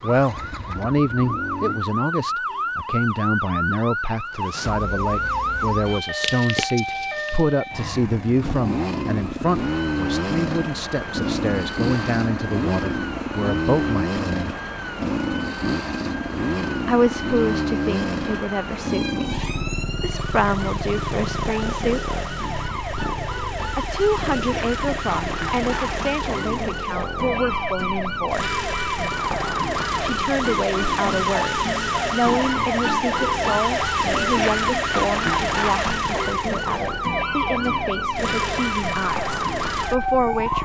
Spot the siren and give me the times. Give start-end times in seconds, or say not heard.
0.0-40.6.